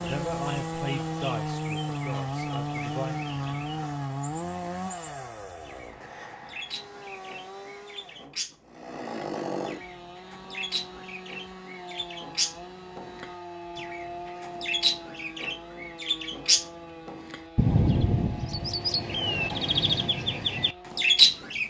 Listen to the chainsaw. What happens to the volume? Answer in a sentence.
The volume of the chainsaw goes down.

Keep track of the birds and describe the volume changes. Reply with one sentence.
The loudness of the birds goes up.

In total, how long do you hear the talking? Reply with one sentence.
The talking can be heard for 3 seconds in total.